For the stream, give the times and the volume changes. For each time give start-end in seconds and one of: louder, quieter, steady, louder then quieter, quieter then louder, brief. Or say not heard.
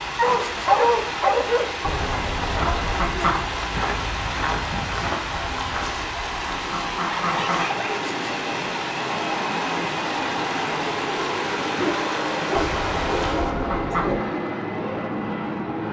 0.0-13.6 steady.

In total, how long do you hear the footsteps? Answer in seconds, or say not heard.
6 s.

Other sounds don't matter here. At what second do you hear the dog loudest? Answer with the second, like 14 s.
1 s.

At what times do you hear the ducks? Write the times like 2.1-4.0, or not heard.
1.8-3.5, 5.3-7.7, 12.6-14.2.